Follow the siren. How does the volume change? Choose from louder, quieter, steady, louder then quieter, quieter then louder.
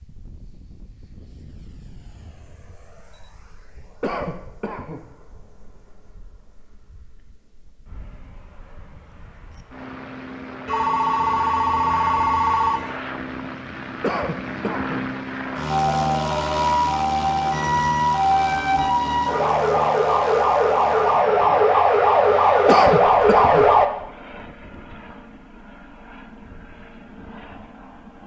louder.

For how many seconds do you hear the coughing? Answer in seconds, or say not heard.
3 s.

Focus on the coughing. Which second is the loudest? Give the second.
23 s.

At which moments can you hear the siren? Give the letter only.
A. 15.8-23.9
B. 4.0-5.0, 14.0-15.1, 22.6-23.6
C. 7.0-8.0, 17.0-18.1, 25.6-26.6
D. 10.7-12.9
A.